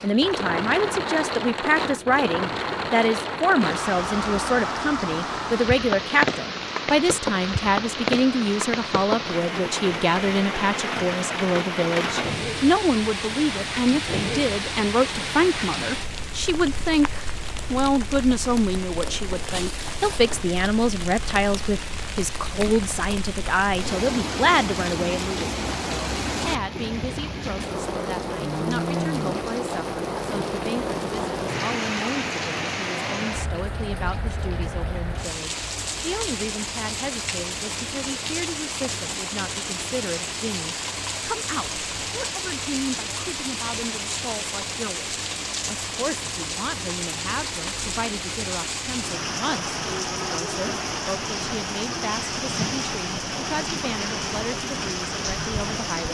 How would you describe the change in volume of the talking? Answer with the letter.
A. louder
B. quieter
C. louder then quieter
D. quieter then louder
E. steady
B.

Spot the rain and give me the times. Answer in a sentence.
You can hear the rain from 0.0 to 56.0 s.